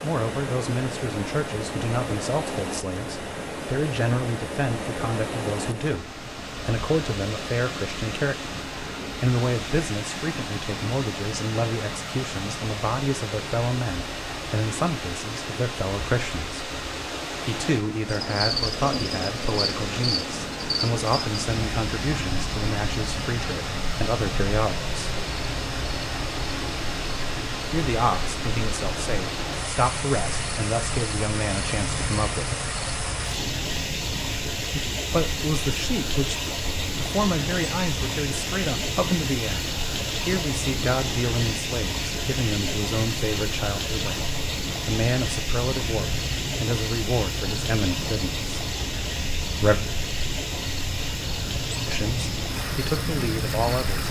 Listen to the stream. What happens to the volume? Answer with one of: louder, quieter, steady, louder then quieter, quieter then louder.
steady.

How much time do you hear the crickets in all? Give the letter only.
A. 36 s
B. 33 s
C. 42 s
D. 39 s
A.